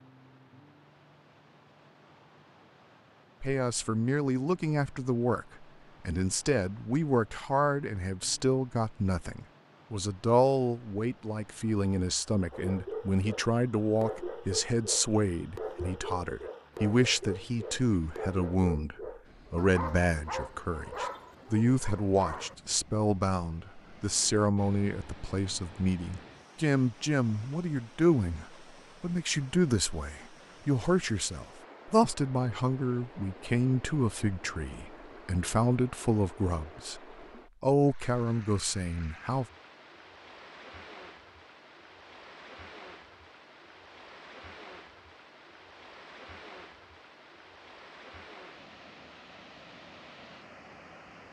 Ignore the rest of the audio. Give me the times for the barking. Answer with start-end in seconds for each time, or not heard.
12.5-22.6.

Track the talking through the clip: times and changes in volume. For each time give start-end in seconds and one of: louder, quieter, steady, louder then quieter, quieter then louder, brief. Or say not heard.
3.4-37.0 steady
37.6-39.5 brief.